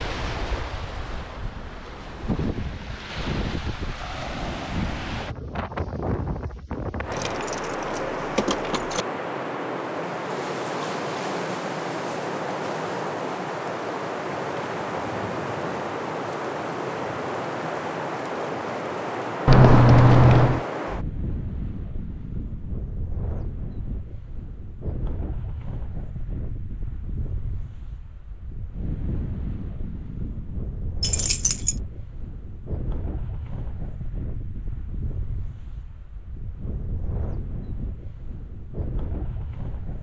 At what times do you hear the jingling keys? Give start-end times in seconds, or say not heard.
7.1-9.1, 19.4-20.6, 31.0-31.8.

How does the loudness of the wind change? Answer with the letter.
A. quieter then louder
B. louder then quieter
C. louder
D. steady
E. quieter
E.